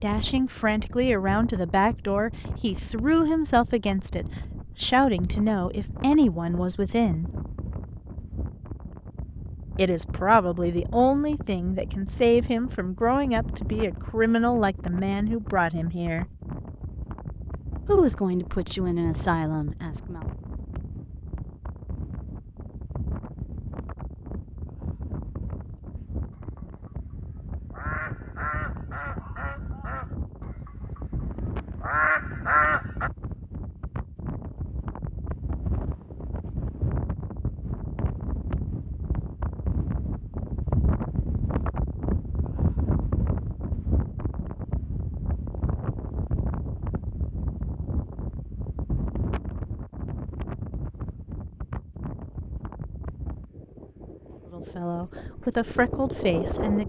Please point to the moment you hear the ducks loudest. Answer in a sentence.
The loudest moment of the ducks is at 33 seconds.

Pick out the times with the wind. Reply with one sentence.
You can hear the wind from 0.0 to 56.8 s.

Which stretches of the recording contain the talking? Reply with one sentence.
You can hear the talking from 0.0 to 7.3 s, from 9.8 to 16.2 s, from 17.9 to 20.2 s and from 54.5 to 56.8 s.